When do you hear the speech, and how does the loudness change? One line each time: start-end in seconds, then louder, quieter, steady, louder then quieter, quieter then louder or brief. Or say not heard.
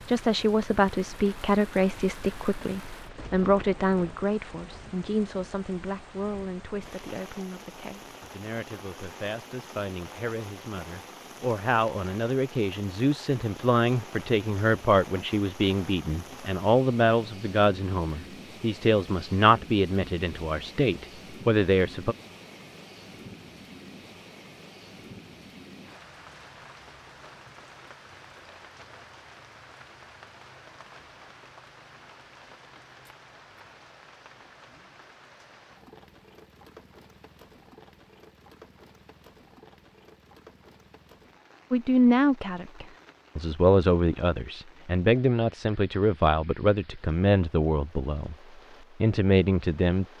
0.1-22.1 quieter then louder
41.7-48.4 steady
49.0-50.0 brief.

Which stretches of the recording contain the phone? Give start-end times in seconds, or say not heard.
not heard.